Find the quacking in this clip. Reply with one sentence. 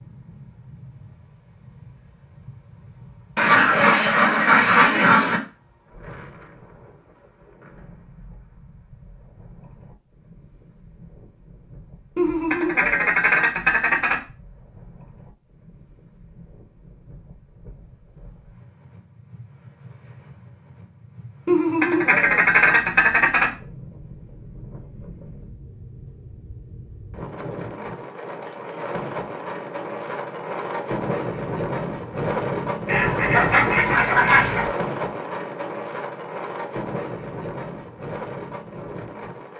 You can hear the quacking from 3.4 to 5.4 s, from 12.2 to 14.2 s, from 21.4 to 23.5 s and from 32.9 to 34.7 s.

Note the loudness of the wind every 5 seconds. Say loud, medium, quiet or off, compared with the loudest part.
quiet, quiet, quiet, quiet, quiet, medium, loud, medium.